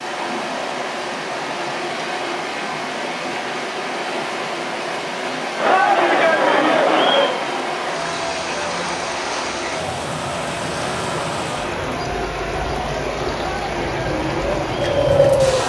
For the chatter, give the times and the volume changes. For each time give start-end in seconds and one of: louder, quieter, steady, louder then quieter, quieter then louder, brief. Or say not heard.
5.5-15.6 quieter.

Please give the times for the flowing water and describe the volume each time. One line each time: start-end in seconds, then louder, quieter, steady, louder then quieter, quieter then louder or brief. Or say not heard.
0.0-15.6 steady.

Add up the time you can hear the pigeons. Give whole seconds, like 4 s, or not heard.
2 s.